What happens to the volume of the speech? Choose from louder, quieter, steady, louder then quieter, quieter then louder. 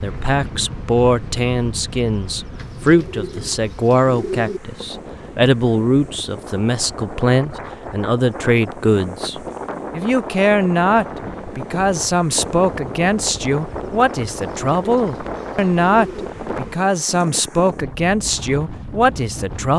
steady.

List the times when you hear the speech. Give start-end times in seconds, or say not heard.
0.0-19.7.